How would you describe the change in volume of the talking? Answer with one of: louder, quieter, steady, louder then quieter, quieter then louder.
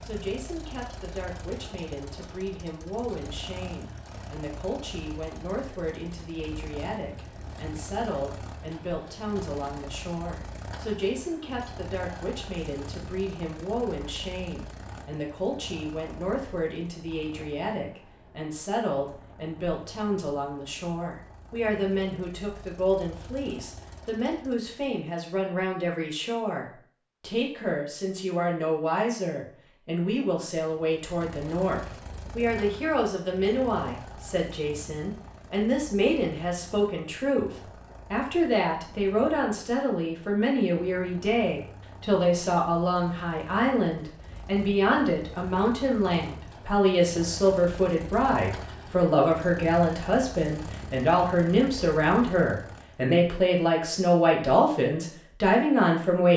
louder.